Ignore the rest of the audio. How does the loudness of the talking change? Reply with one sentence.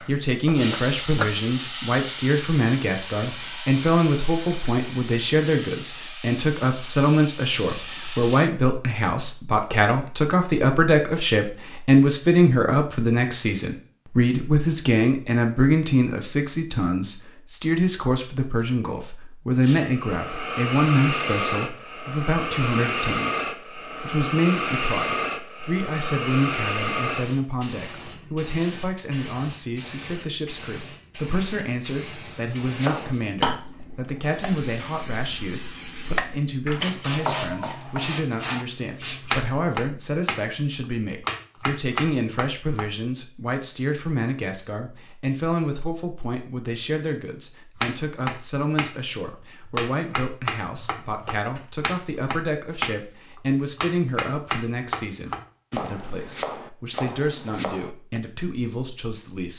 The loudness of the talking goes down.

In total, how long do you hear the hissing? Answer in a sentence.
You can hear the hissing for 28 seconds altogether.